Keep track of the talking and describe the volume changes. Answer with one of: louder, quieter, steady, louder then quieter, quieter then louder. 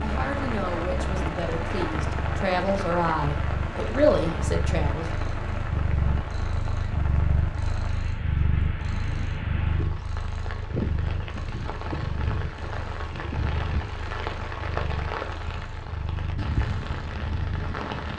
louder.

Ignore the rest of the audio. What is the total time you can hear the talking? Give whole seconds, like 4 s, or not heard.
5 s.